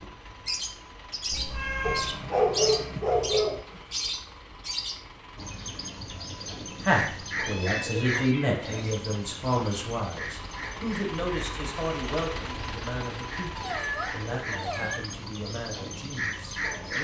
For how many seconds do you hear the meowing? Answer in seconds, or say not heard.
4 s.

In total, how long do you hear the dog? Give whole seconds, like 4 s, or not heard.
2 s.